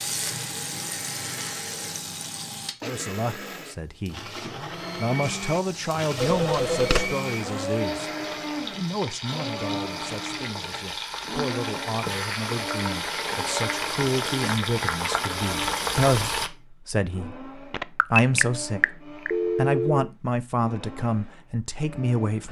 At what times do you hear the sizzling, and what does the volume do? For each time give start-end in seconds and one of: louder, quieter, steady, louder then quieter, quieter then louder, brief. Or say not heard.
0.0-2.8 brief
5.2-16.5 louder.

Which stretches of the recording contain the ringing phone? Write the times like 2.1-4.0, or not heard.
6.2-7.2, 17.7-20.1.